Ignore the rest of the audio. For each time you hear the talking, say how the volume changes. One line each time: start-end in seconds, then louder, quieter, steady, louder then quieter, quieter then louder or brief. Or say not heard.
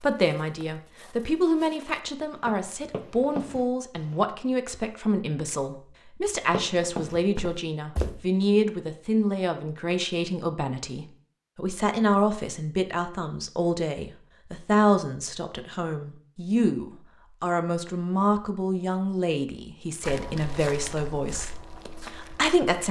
0.0-22.8 steady.